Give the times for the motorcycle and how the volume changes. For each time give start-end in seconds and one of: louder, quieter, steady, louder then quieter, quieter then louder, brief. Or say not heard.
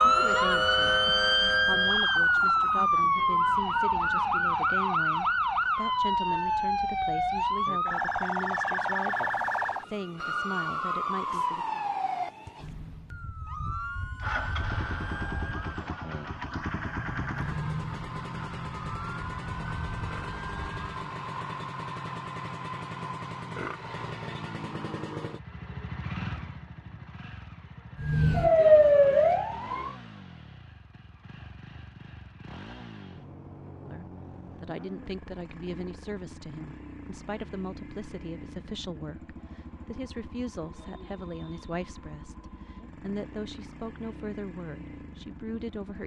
14.2-46.0 quieter.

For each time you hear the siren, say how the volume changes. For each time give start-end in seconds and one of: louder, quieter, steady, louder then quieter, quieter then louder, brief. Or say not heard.
0.0-21.1 quieter
27.9-29.9 brief.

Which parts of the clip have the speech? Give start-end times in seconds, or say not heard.
0.0-1.0, 1.6-11.8, 33.8-46.0.